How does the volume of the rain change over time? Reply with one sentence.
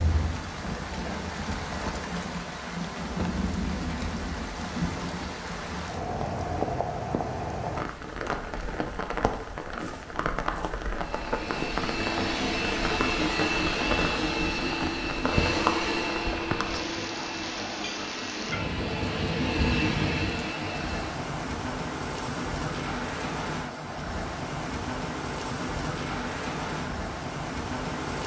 The loudness of the rain stays about the same.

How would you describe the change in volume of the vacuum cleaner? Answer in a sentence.
The volume of the vacuum cleaner goes down, then up.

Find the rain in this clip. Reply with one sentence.
The rain can be heard from 0.0 to 28.2 s.